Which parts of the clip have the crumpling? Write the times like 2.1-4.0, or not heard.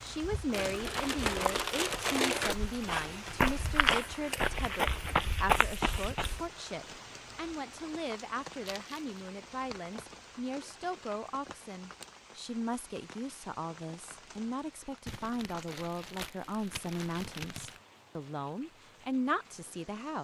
0.5-2.5, 8.7-9.2, 15.1-17.8.